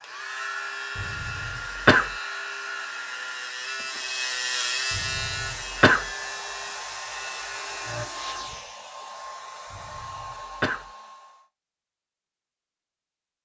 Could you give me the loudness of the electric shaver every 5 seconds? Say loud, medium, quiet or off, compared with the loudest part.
loud, loud, off.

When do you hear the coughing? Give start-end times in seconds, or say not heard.
0.9-2.1, 4.9-6.0, 9.7-10.8.